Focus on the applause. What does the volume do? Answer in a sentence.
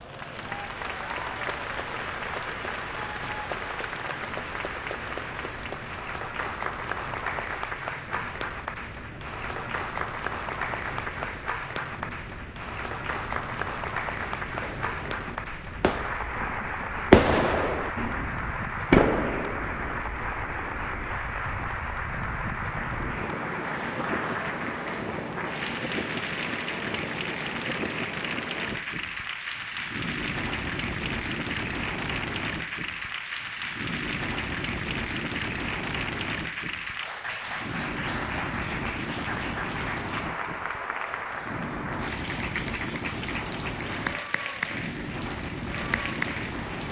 The volume of the applause stays about the same.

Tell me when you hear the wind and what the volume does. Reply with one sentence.
The wind can be heard from 0.0 to 46.8 s, getting louder.